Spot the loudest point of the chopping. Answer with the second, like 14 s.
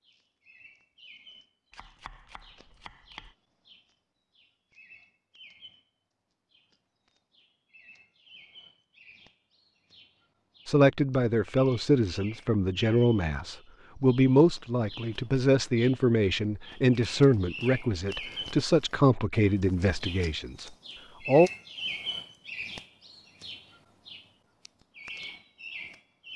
3 s.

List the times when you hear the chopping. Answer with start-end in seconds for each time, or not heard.
1.7-3.4.